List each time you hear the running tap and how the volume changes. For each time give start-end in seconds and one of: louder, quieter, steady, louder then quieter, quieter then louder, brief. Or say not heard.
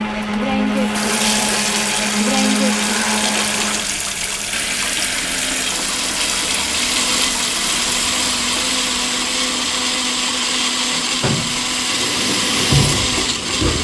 0.0-13.8 quieter then louder.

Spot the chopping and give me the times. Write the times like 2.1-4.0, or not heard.
not heard.